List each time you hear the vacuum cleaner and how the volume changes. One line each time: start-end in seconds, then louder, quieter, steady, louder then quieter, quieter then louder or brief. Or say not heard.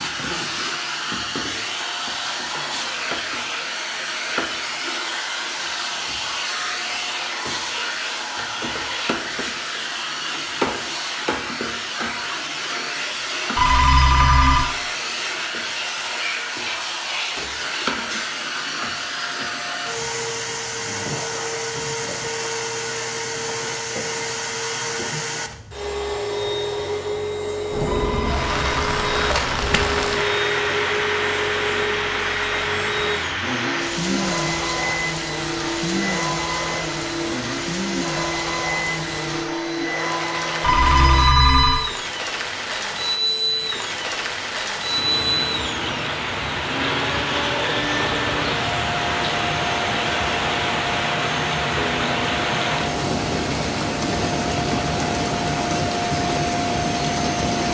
0.0-57.6 steady.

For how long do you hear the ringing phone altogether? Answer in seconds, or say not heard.
4 s.